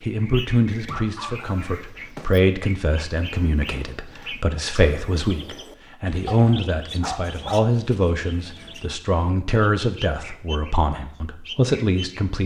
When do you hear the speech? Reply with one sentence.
You can hear the speech from 0.0 to 12.4 s.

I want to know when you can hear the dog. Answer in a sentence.
You can hear the dog from 0.8 to 2.3 s and from 6.2 to 7.7 s.